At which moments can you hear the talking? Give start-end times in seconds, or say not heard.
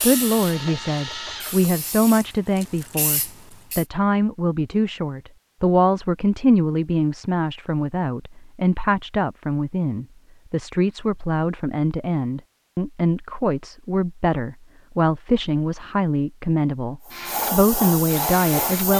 0.0-18.9.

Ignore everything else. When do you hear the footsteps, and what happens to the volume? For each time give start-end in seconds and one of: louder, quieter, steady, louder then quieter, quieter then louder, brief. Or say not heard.
not heard.